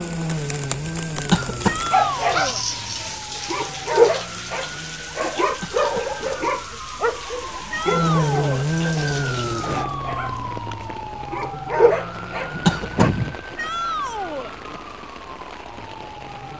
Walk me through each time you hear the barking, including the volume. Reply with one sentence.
The barking can be heard from 1.9 to 13.1 s, getting quieter then louder.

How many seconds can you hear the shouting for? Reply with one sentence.
The shouting can be heard for 3 seconds in total.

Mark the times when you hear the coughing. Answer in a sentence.
The coughing can be heard from 1.3 to 1.9 s, from 5.6 to 6.2 s and from 12.7 to 13.2 s.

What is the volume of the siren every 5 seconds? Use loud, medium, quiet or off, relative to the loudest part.
medium, loud, medium, quiet.